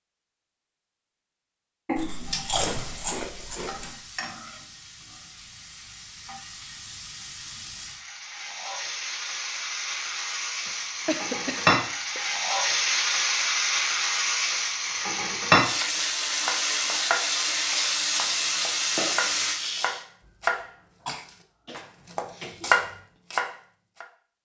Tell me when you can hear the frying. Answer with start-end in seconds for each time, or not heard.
2.0-20.1.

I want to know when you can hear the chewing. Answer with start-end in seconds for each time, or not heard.
1.9-3.9.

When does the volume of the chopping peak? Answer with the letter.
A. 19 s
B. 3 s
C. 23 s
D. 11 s
C.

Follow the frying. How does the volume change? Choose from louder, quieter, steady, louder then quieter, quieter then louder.
louder.